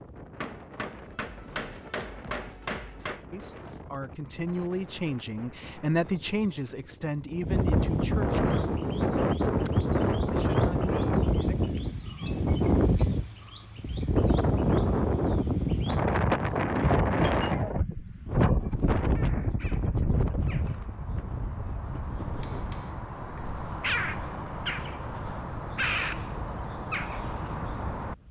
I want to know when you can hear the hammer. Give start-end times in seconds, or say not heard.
0.4-3.3, 22.4-23.6.